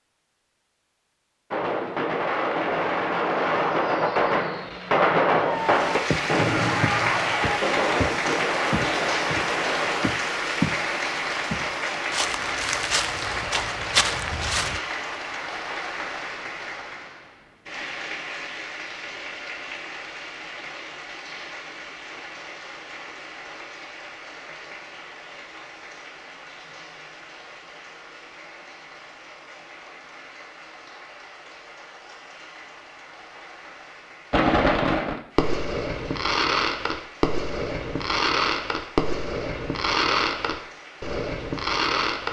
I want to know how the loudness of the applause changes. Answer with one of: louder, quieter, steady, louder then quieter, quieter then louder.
quieter.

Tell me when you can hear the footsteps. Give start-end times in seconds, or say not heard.
6.1-10.8, 11.5-14.8.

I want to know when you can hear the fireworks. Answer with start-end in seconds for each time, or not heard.
1.5-10.1, 34.3-42.2.